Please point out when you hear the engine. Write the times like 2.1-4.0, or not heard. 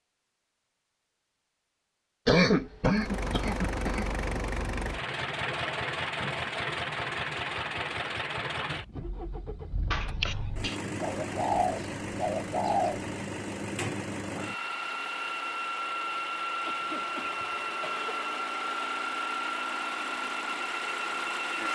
2.9-21.7.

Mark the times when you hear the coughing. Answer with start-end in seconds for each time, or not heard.
2.2-4.1, 9.9-10.8, 16.6-18.1.